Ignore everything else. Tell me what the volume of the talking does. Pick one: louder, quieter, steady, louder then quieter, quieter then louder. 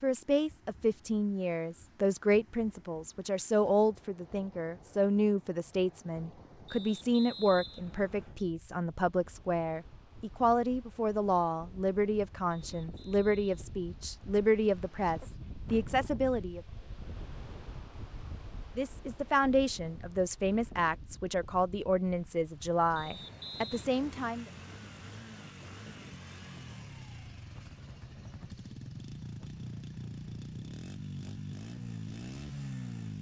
steady.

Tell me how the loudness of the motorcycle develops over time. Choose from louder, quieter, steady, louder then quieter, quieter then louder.
louder.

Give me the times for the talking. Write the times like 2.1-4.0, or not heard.
0.0-16.6, 18.8-24.4.